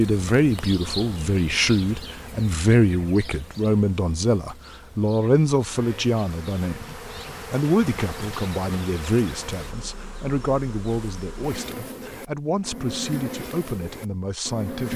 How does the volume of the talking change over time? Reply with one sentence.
The loudness of the talking goes down.